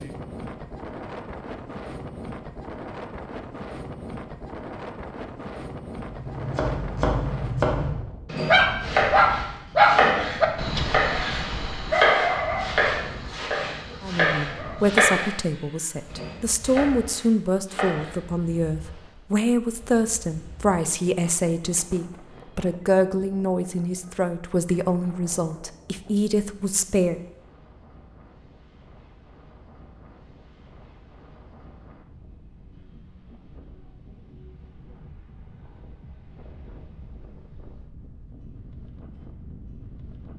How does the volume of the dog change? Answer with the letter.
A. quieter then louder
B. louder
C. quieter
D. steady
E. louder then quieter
C.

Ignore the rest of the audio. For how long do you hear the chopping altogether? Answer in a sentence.
The chopping can be heard for 12 seconds in total.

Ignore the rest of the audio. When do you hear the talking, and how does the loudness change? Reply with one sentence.
The talking can be heard from 14.0 to 27.2 s, at a steady volume.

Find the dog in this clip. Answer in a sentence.
The dog can be heard from 8.4 to 14.8 s.